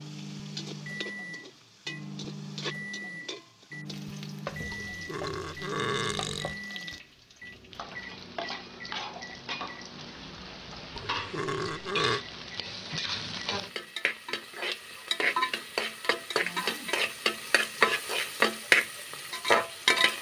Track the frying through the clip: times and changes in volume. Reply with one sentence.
The frying can be heard from 0.0 to 20.1 s, getting louder.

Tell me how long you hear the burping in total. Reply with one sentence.
You can hear the burping for 3 seconds altogether.